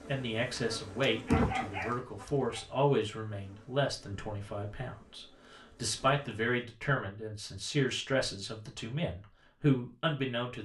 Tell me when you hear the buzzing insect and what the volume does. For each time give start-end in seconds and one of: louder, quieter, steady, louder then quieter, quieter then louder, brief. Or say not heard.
0.0-6.7 quieter.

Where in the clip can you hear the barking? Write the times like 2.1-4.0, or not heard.
1.2-2.8.